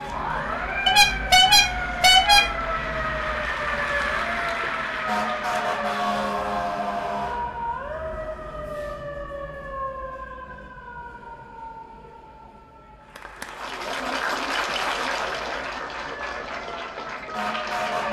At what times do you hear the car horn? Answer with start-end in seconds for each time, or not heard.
0.8-2.4.